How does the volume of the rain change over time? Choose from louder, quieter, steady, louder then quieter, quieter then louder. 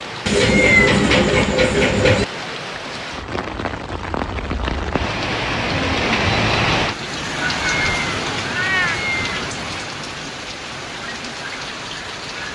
louder then quieter.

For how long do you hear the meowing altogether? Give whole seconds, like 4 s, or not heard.
4 s.